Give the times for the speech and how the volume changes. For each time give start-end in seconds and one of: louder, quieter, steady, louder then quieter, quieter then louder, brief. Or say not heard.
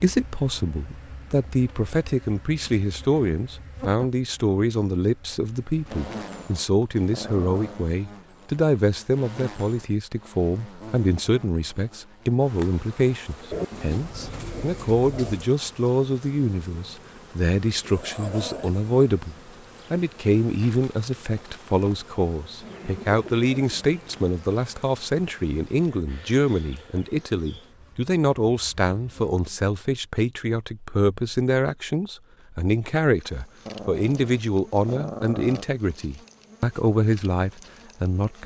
0.0-38.4 steady.